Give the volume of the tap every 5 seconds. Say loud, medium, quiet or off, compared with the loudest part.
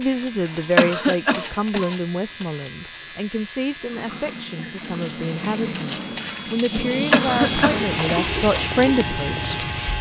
quiet, loud.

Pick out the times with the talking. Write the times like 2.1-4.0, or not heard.
0.0-9.9.